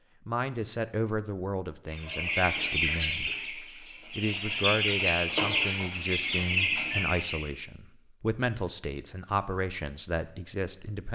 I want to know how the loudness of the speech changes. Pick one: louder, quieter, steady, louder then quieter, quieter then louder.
steady.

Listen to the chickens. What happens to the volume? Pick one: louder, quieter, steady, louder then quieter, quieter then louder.
quieter then louder.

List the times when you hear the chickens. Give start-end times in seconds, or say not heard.
1.9-7.5.